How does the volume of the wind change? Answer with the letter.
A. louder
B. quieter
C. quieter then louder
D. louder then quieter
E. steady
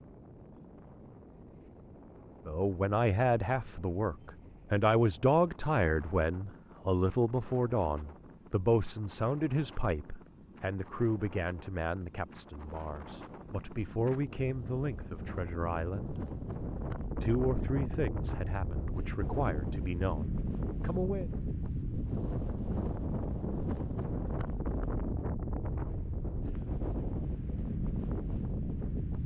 A.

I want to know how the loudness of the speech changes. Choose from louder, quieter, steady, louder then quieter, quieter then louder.
quieter.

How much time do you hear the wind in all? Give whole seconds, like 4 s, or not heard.
29 s.